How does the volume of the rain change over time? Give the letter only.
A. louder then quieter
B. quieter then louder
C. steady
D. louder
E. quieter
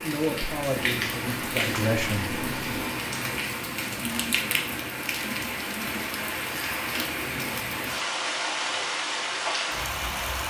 C.